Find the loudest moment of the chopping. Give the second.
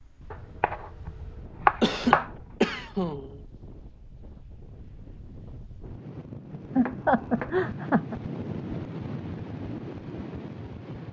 2 s.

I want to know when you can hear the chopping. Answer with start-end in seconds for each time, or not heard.
0.3-2.3, 6.8-7.5.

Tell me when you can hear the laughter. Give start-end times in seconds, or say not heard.
1.8-3.4, 6.8-8.2.